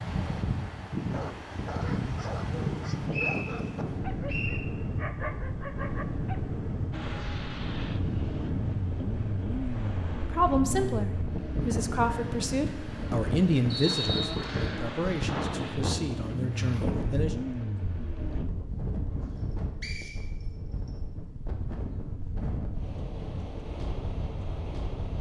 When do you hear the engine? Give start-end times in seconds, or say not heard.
6.9-18.5.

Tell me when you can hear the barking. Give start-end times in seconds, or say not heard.
0.9-6.4.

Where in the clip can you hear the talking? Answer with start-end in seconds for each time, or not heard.
10.2-17.4.